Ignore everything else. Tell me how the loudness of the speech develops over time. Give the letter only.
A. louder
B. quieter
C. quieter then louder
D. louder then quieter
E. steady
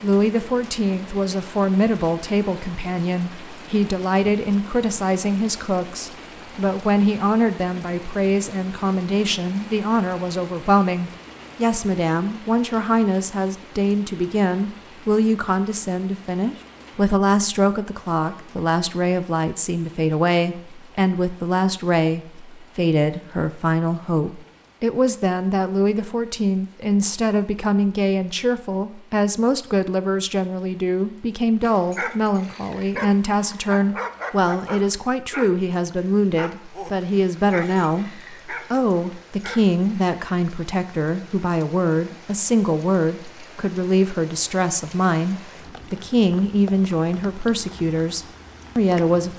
E.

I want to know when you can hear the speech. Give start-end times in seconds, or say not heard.
0.0-49.3.